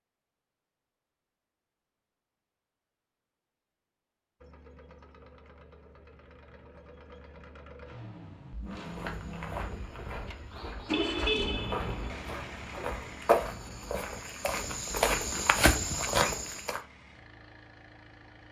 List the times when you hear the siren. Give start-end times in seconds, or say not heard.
not heard.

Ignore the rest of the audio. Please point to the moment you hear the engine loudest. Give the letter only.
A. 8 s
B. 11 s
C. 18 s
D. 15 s
B.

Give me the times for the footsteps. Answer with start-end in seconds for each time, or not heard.
8.8-16.8.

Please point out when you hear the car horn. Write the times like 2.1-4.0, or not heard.
10.9-11.9.